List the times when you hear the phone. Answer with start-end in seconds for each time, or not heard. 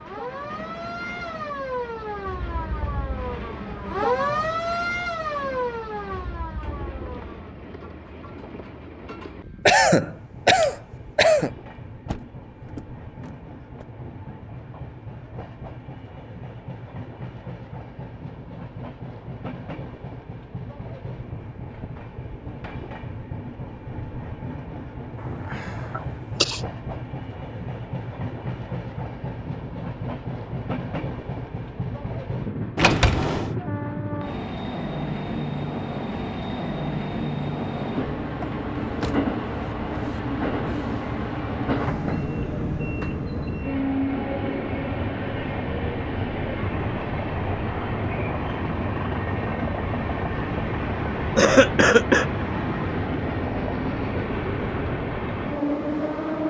not heard.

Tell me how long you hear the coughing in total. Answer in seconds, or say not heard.
4 s.